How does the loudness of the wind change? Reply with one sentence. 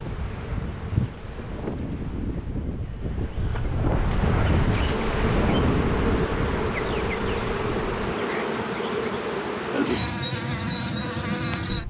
The volume of the wind goes up, then down.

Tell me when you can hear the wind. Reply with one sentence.
The wind can be heard from 0.0 to 8.2 s.